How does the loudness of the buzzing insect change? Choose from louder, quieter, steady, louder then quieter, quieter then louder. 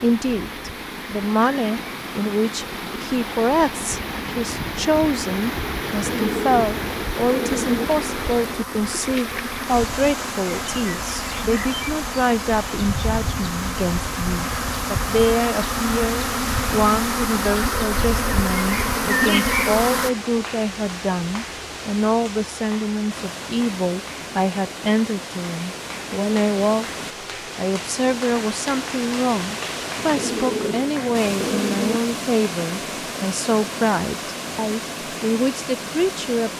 louder.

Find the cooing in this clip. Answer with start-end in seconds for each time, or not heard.
5.9-7.8, 29.9-32.0.